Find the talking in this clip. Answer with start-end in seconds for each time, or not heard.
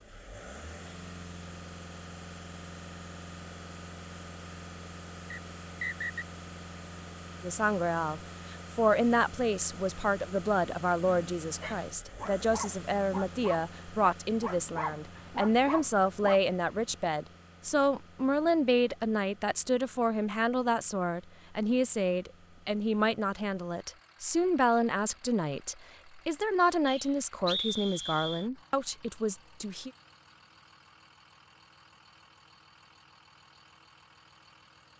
7.4-29.9.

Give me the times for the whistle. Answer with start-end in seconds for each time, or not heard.
5.3-6.2, 26.9-28.4.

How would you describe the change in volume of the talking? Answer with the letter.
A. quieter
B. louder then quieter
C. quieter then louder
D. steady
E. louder
D.